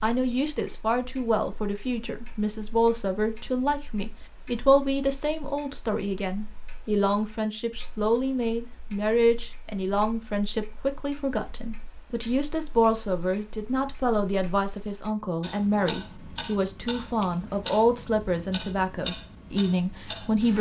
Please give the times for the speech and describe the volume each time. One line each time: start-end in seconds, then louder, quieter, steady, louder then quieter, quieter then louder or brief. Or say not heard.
0.0-20.5 steady.